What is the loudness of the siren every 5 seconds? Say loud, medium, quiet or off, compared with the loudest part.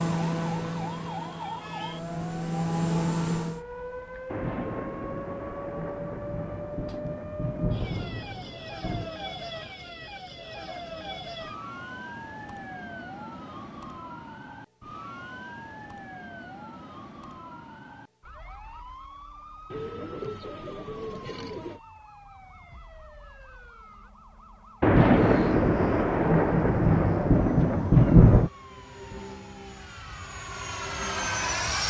loud, loud, loud, medium, medium, medium, medium.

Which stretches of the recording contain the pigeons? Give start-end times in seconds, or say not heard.
19.7-21.8.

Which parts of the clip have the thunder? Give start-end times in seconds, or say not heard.
4.3-9.2, 24.8-28.5.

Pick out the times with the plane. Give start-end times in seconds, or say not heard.
0.0-3.6, 25.1-31.8.